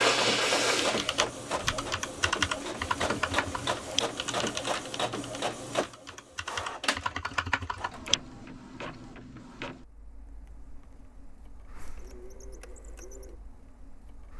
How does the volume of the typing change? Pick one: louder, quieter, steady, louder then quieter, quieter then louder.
quieter then louder.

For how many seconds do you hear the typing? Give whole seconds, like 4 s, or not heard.
7 s.